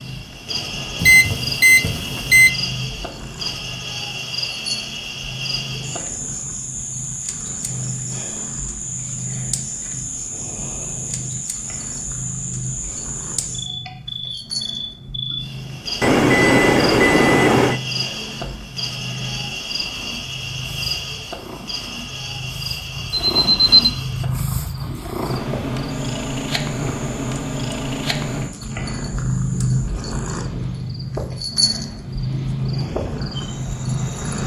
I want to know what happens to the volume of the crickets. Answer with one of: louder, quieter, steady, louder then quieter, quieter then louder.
quieter.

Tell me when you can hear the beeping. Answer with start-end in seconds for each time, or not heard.
1.0-2.5, 16.0-17.8, 23.1-23.9.